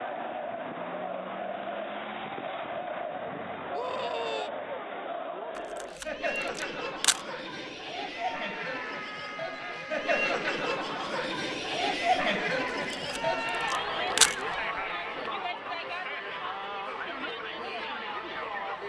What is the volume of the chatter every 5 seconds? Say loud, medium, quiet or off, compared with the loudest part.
medium, medium, loud, medium.